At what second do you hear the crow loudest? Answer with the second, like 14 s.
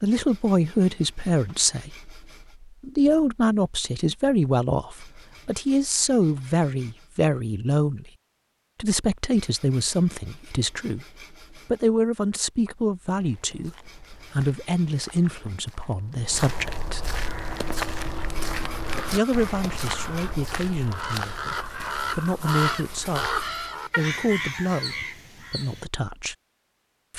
23 s.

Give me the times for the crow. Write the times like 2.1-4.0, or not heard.
17.2-25.9.